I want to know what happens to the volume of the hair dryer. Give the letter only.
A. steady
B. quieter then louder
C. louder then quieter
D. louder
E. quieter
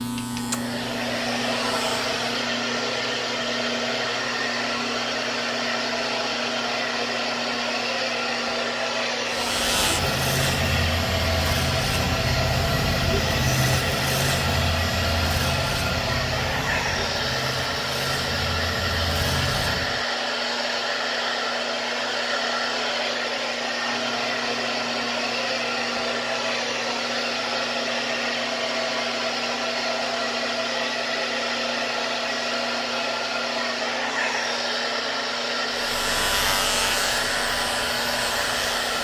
A.